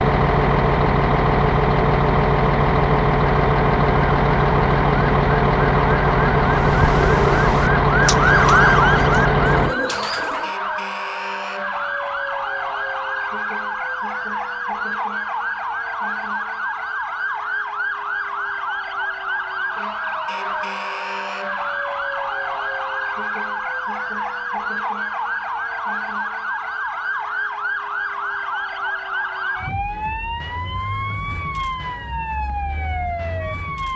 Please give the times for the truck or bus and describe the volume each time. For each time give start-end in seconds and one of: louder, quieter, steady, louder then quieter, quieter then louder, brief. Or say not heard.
0.0-9.8 steady.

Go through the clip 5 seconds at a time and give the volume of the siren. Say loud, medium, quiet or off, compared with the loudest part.
off, loud, medium, medium, medium, medium, medium.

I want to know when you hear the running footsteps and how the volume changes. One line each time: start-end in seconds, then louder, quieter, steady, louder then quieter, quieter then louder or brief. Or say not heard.
not heard.